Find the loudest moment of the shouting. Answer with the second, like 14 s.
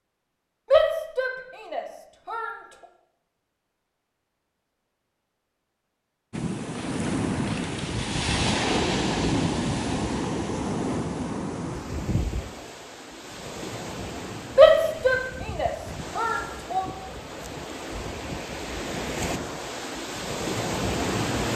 15 s.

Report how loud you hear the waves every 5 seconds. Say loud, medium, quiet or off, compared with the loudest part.
off, loud, medium, medium, loud.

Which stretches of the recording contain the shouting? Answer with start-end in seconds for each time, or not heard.
0.7-2.5, 14.6-16.9.